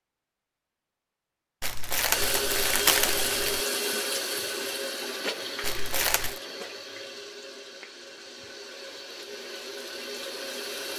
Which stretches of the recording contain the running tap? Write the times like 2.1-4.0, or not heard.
2.1-10.9.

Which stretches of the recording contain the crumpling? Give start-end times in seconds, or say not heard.
1.6-3.6, 5.6-6.4.